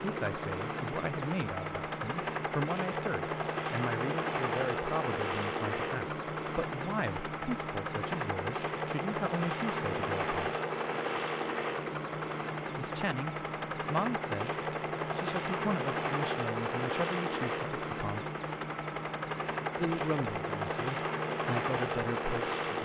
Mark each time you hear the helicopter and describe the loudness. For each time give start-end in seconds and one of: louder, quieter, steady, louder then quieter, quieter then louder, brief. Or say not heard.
0.0-22.8 steady.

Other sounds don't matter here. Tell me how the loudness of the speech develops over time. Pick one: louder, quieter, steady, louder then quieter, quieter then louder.
steady.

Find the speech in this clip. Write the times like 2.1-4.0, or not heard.
0.0-10.3, 12.8-18.2, 19.8-22.8.